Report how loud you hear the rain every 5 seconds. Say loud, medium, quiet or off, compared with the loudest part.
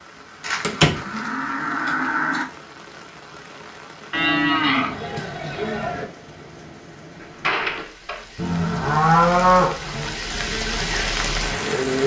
quiet, quiet, loud.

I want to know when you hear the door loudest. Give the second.
1 s.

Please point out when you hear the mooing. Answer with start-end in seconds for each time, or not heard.
0.4-2.5, 4.1-6.0, 8.3-10.2.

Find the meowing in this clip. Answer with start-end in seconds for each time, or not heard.
not heard.